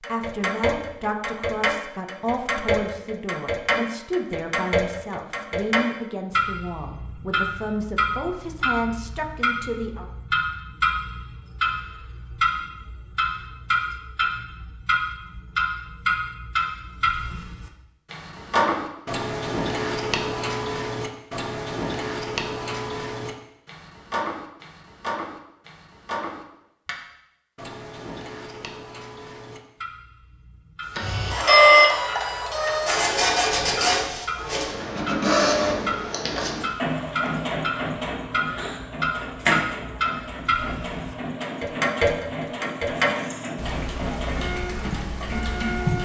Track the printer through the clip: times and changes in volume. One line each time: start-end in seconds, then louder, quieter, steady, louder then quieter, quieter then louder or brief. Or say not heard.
30.9-46.0 quieter.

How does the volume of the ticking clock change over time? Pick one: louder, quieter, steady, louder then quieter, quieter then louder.
quieter then louder.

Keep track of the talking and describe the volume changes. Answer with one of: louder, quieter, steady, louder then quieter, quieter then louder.
steady.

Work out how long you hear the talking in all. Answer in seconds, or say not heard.
10 s.